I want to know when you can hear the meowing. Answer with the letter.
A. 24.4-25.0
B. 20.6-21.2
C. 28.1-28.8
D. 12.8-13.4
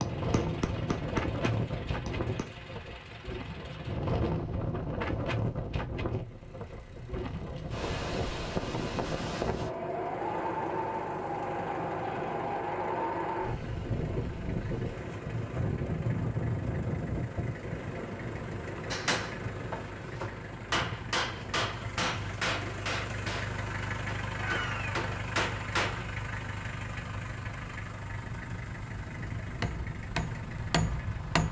A.